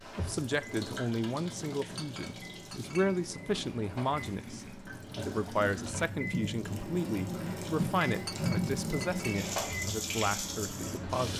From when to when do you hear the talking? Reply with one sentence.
The talking can be heard from 0.1 to 11.3 s.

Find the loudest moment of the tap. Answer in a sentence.
The volume of the tap peaks at 8 seconds.